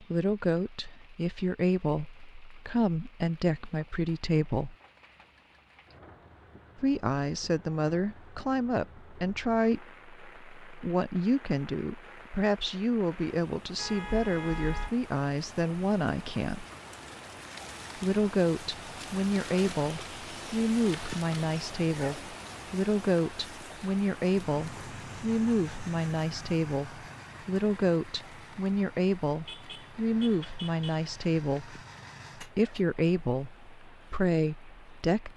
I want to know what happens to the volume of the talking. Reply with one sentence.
The loudness of the talking stays about the same.